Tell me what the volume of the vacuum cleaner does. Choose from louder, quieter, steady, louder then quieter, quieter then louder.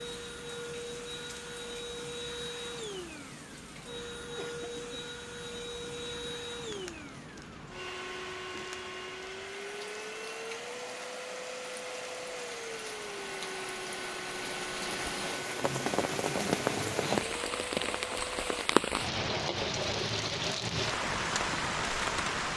steady.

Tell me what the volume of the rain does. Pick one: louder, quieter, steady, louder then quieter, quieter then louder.
louder.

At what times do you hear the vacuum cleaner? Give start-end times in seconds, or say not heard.
0.0-18.7.